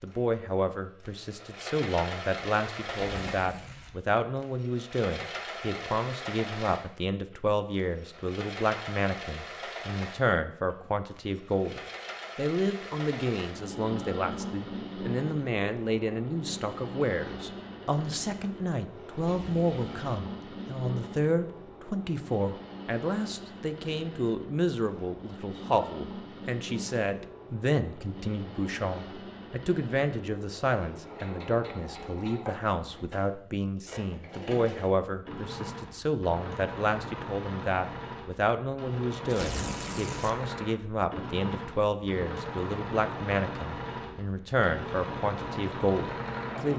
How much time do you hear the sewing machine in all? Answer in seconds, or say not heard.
47 s.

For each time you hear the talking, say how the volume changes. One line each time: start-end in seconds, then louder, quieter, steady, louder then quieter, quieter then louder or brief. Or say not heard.
0.0-46.7 steady.